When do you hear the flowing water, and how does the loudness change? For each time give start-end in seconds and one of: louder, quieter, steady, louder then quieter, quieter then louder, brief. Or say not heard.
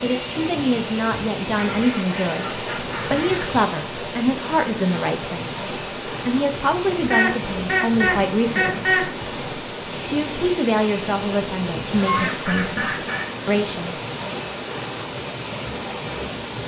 0.0-16.6 steady.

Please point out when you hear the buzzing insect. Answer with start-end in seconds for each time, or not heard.
not heard.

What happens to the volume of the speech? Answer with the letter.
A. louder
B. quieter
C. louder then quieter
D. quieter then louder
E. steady
E.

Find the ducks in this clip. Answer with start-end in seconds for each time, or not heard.
1.5-3.5, 7.1-9.1, 11.8-13.3.